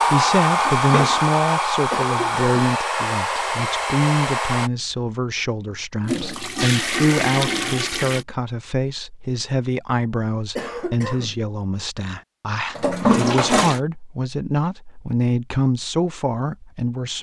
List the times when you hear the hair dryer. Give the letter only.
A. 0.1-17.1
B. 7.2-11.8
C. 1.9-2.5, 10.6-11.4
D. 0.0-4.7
D.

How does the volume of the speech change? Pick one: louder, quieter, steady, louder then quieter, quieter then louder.
steady.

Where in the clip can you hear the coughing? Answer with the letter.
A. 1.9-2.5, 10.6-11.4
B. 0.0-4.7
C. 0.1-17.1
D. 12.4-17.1
A.